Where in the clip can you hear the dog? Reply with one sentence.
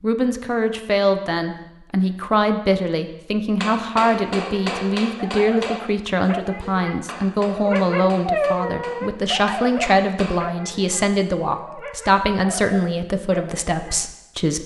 You can hear the dog from 4.4 to 14.1 s.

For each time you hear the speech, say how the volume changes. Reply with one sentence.
You can hear the speech from 0.0 to 14.6 s, at a steady volume.